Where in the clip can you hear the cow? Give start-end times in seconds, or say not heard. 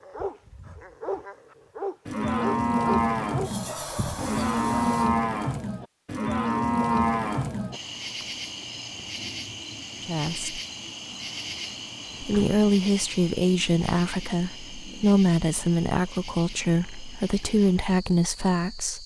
2.0-7.8.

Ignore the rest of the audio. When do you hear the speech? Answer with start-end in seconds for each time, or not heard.
10.0-10.6, 12.2-19.0.